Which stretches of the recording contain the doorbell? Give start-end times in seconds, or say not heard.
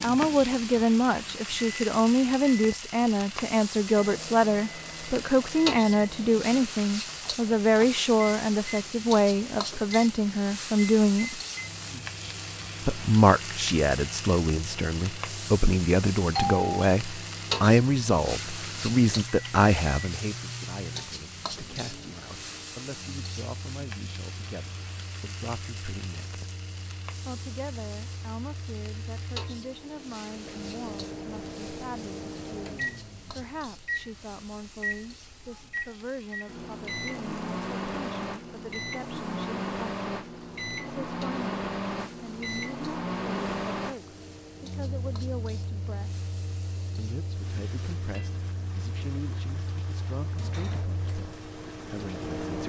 16.4-16.9.